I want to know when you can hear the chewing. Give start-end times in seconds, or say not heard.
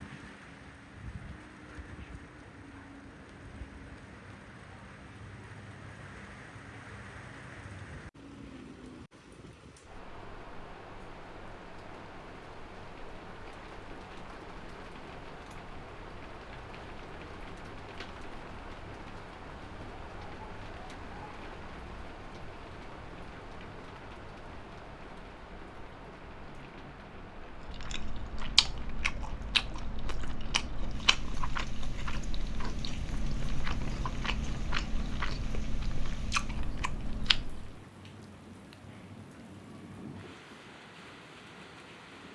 27.5-37.8.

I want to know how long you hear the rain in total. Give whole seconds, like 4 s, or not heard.
42 s.